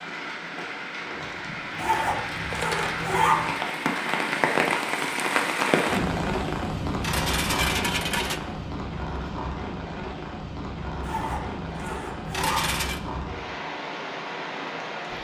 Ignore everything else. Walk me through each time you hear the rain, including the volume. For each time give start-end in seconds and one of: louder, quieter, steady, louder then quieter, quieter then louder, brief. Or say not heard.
0.0-15.1 louder then quieter.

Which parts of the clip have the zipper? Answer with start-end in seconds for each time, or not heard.
1.8-3.5, 11.0-12.7.